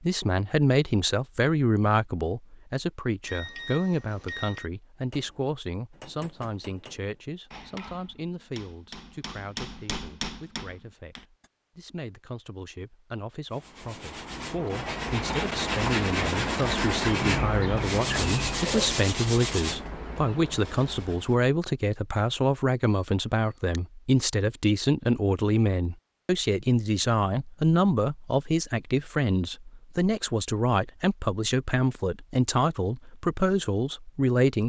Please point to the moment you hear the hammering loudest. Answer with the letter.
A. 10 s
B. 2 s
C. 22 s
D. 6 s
A.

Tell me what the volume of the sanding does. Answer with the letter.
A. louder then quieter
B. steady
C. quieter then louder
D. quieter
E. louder
A.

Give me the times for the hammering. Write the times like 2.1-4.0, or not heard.
5.1-11.5.